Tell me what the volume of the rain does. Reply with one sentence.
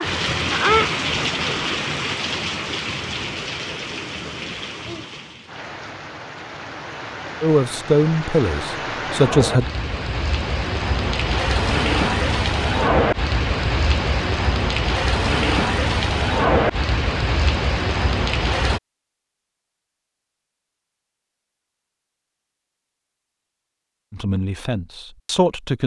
The loudness of the rain goes down, then up.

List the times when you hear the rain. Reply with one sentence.
The rain can be heard from 0.0 to 18.8 s.